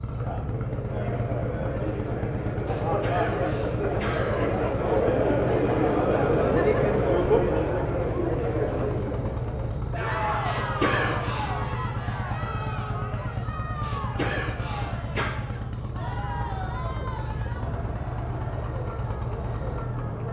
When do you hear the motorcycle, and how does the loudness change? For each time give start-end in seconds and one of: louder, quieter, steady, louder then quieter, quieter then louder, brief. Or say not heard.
0.0-20.2 steady.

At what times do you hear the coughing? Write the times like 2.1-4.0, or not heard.
2.6-4.6, 10.4-11.6, 13.8-15.3.